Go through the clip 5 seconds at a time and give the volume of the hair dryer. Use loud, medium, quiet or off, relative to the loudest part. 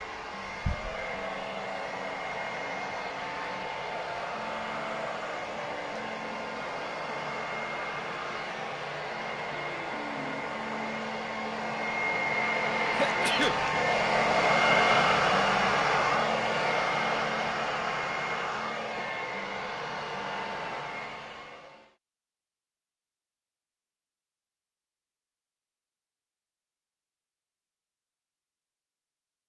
medium, medium, loud, loud, medium, off.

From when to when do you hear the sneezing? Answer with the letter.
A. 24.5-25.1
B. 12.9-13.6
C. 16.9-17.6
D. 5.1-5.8
B.